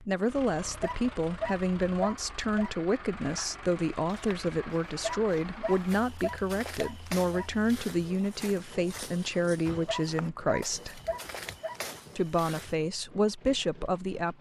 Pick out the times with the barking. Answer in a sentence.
You can hear the barking from 0.8 to 2.7 s, from 5.0 to 7.5 s and from 9.8 to 11.8 s.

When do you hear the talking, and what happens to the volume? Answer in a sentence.
The talking can be heard from 0.0 to 11.0 s, at a steady volume; and briefly from 12.2 to 14.3 s.